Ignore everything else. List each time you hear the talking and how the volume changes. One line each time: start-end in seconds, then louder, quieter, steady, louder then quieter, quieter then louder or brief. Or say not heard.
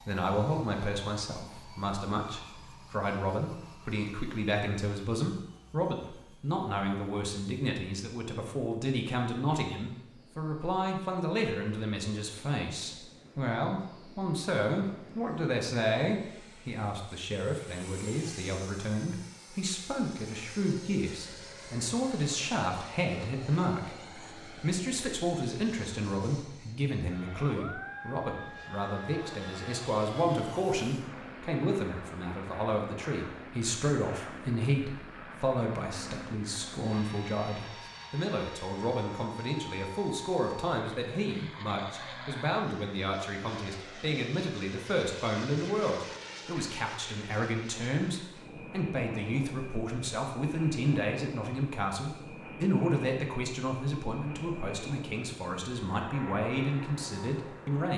0.1-57.9 steady.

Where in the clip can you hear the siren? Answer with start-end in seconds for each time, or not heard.
not heard.